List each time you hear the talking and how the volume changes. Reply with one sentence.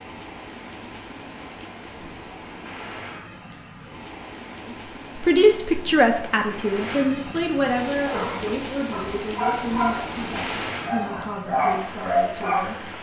The talking can be heard from 5.2 to 12.9 s, getting quieter.